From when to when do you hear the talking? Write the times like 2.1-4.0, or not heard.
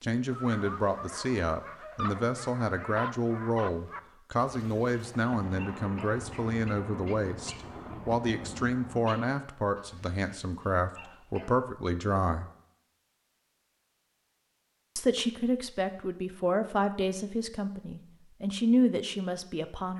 0.0-12.5, 14.9-19.9.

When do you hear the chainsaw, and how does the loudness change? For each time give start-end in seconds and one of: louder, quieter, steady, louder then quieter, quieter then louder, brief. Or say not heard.
not heard.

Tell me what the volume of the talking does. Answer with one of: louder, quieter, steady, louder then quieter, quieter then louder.
steady.